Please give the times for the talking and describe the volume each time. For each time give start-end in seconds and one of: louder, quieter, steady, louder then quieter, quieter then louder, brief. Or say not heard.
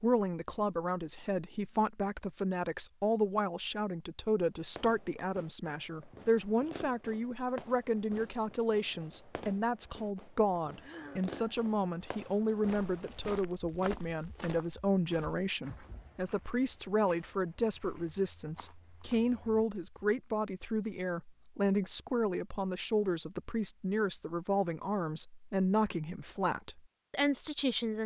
0.0-28.0 steady.